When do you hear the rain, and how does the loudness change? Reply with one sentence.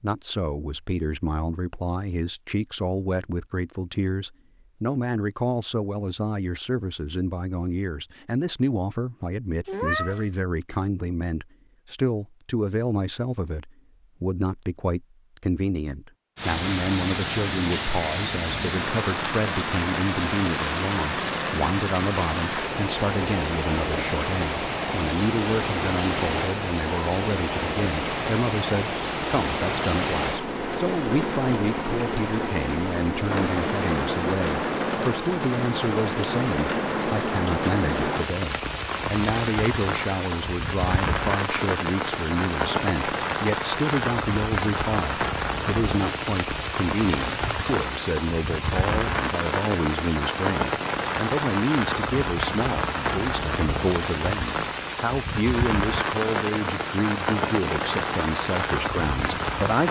You can hear the rain from 16.4 to 59.8 s, at a steady volume.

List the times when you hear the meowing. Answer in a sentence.
The meowing can be heard from 9.7 to 10.2 s.